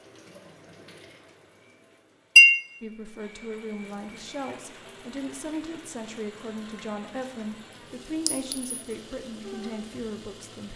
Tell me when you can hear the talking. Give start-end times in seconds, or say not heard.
2.8-10.7.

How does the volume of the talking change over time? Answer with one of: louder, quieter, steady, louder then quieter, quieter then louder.
steady.